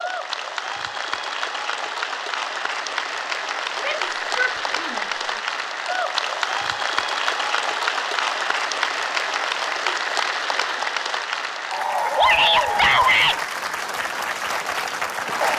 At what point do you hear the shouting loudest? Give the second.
13 s.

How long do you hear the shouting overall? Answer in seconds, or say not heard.
3 s.